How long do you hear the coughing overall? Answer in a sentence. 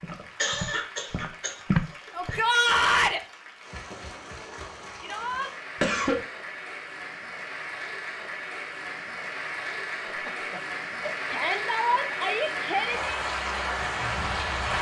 The coughing can be heard for 4 seconds in total.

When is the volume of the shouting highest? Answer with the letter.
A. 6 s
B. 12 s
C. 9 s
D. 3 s
D.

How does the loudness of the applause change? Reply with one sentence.
The loudness of the applause goes up.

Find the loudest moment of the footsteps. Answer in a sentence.
The loudest moment of the footsteps is at 2 seconds.